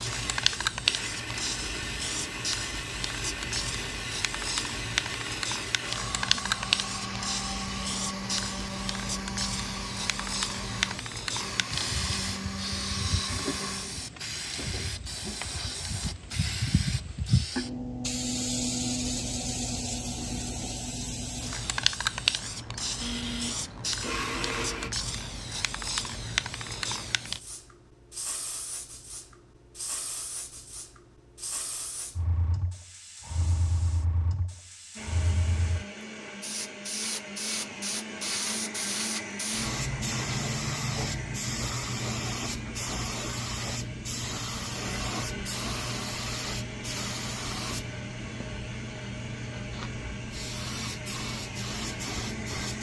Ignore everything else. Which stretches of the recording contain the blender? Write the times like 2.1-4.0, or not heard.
0.0-13.8, 22.9-24.9, 35.0-52.7.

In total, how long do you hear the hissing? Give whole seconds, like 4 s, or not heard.
53 s.